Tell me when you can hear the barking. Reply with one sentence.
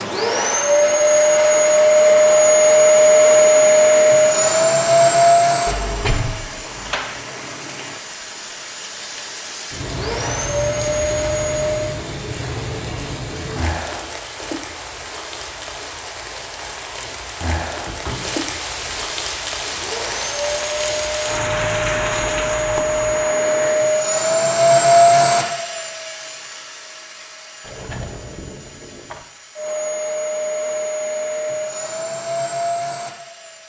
You can't hear the barking here.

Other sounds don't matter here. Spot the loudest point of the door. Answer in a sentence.
The volume of the door peaks at 6 seconds.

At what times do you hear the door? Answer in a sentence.
The door can be heard from 5.7 to 7.2 s, from 17.9 to 19.2 s and from 27.6 to 29.2 s.